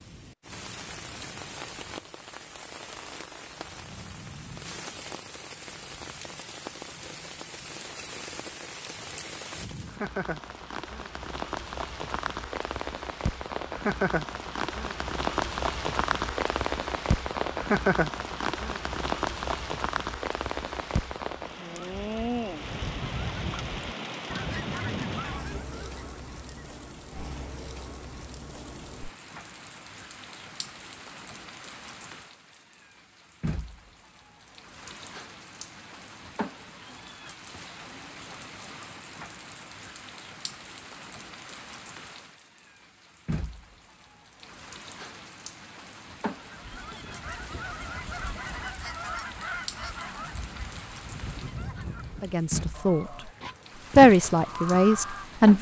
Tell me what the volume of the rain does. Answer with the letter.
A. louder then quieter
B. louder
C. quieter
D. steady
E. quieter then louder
A.